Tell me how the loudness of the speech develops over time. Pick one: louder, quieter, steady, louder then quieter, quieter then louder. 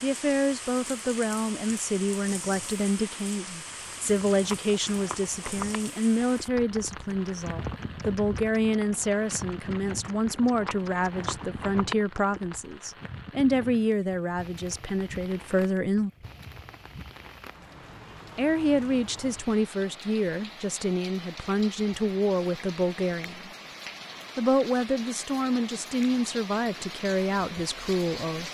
steady.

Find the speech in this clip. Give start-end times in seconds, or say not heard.
0.0-16.1, 18.4-23.5, 24.4-28.5.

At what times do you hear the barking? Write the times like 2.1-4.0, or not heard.
not heard.